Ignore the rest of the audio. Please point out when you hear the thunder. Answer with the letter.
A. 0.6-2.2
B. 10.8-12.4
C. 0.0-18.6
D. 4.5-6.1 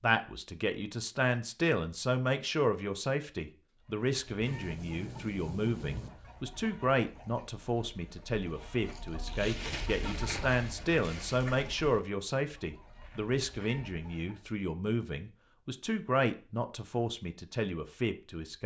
D.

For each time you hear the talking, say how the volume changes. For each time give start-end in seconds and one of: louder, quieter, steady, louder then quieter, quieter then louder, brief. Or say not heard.
0.0-18.6 steady.